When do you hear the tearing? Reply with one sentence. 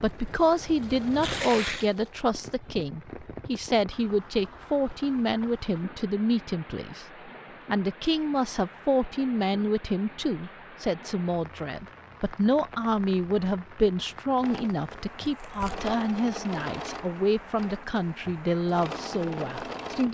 You can hear the tearing from 1.2 to 1.9 s and from 15.2 to 15.9 s.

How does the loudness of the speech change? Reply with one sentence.
The loudness of the speech stays about the same.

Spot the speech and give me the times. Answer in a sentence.
The speech can be heard from 0.0 to 7.0 s and from 7.7 to 20.0 s.